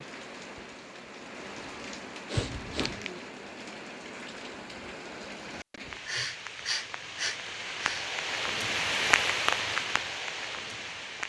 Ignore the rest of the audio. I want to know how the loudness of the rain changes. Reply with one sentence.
The volume of the rain goes up.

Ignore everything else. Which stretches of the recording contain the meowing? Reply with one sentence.
You can hear the meowing from 2.4 to 3.1 s.